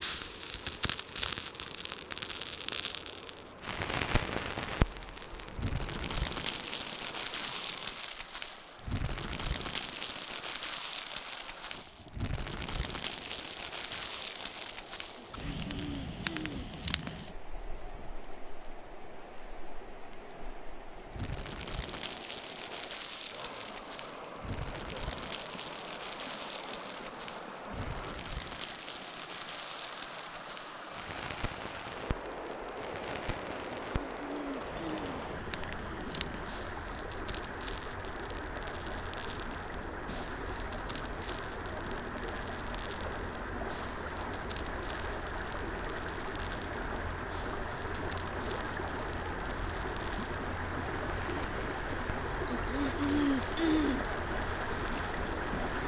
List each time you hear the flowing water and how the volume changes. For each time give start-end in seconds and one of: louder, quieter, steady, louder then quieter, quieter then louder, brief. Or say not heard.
0.0-55.8 louder.